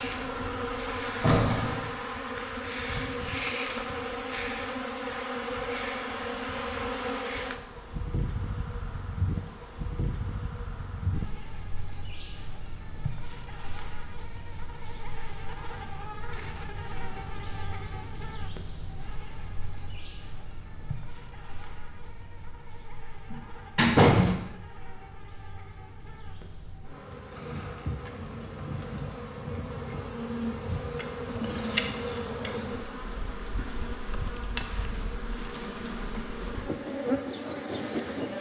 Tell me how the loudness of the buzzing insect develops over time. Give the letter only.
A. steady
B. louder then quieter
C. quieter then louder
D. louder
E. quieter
C.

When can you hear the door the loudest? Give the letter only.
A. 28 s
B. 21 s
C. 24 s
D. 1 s
C.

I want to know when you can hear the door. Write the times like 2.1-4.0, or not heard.
0.2-1.9, 23.3-24.4.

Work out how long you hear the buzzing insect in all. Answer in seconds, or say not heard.
38 s.